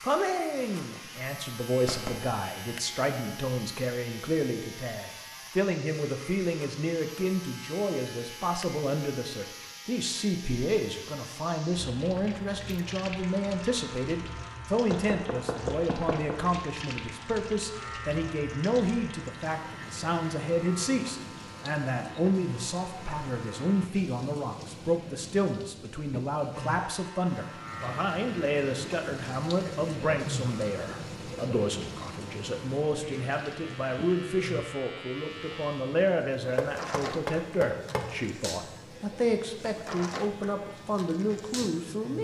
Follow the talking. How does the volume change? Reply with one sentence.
The volume of the talking stays about the same.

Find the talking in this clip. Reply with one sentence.
The talking can be heard from 0.0 to 42.1 s.